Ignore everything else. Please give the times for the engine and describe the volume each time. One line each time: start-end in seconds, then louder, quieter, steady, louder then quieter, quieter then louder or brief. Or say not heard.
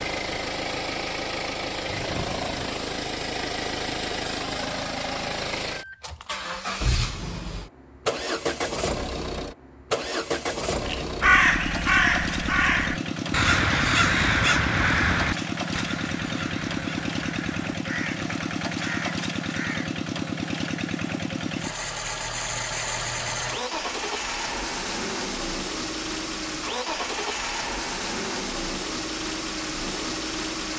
0.0-30.7 steady.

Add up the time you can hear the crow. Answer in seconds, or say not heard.
9 s.